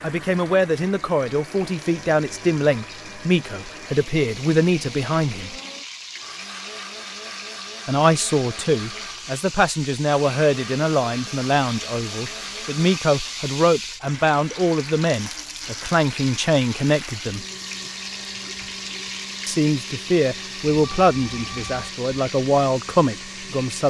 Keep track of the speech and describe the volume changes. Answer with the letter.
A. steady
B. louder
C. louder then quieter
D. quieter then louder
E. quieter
A.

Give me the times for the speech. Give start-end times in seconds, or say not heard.
0.0-5.5, 7.8-17.4, 19.4-23.8.